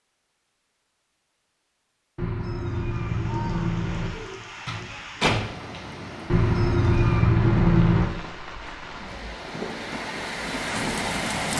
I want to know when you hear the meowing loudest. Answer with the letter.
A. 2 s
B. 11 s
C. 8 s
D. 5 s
C.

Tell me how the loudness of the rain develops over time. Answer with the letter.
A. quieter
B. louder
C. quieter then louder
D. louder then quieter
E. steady
B.